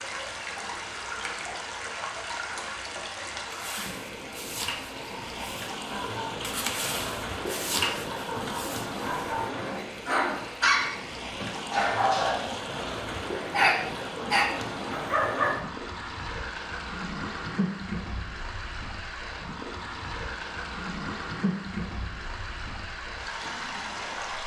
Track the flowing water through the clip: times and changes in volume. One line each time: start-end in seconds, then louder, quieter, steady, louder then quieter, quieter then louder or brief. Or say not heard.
0.0-24.4 steady.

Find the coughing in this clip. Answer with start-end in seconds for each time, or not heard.
not heard.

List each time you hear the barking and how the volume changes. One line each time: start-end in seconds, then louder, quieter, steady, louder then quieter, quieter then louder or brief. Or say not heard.
3.5-15.6 louder.